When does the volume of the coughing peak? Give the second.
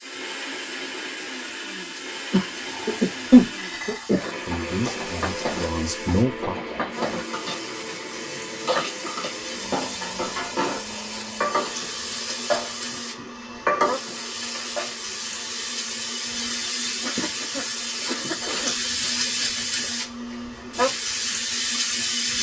3 s.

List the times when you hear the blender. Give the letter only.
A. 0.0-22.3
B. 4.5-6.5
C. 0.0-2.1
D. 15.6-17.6
A.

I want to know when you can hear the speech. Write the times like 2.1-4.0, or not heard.
4.5-6.5.